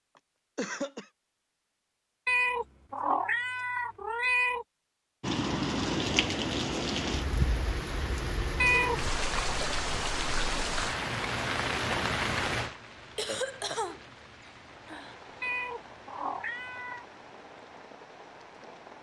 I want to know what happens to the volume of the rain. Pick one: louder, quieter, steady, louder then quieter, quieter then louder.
quieter.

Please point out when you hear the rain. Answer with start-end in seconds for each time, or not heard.
5.2-18.9.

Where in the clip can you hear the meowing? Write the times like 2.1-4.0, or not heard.
2.2-4.7, 8.6-9.0, 15.4-17.1.